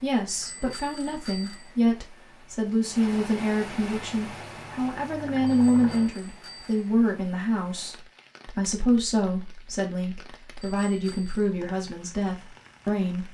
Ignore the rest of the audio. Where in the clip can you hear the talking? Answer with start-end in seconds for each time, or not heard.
0.0-13.2.